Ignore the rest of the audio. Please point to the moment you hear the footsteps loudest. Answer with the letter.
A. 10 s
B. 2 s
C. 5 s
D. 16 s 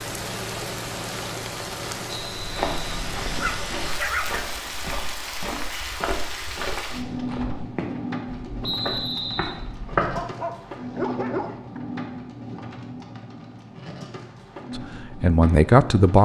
A.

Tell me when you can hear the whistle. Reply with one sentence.
The whistle can be heard from 2.0 to 2.9 s and from 8.6 to 9.6 s.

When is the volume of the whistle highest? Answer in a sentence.
The loudest moment of the whistle is at 9 seconds.